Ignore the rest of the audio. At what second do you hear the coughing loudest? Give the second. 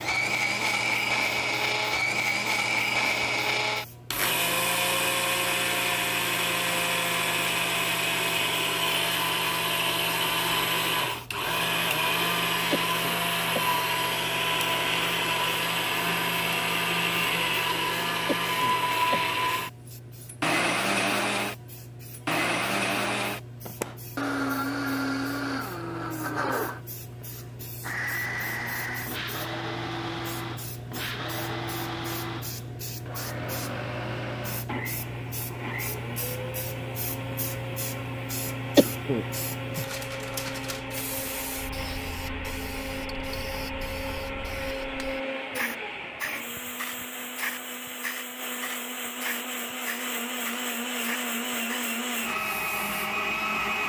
39 s.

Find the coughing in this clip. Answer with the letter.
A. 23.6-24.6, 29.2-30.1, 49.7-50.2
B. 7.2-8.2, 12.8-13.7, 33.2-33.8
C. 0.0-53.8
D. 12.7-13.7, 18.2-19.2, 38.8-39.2
D.